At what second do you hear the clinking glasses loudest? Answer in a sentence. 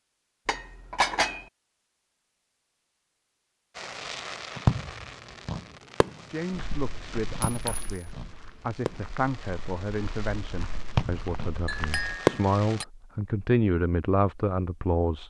The loudest moment of the clinking glasses is at 1 second.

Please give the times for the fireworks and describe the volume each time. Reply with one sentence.
The fireworks can be heard from 3.8 to 12.8 s, getting quieter then louder.